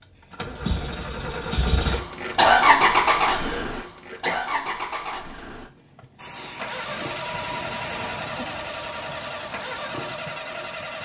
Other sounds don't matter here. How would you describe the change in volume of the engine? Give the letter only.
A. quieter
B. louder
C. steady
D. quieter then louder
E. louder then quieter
E.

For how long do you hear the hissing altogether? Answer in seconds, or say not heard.
5 s.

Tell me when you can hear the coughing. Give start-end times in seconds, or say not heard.
3.3-4.4.